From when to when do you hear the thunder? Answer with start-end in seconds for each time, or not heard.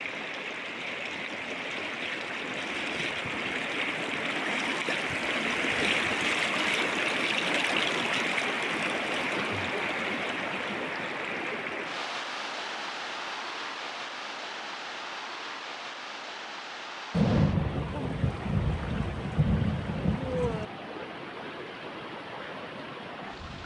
17.1-20.6.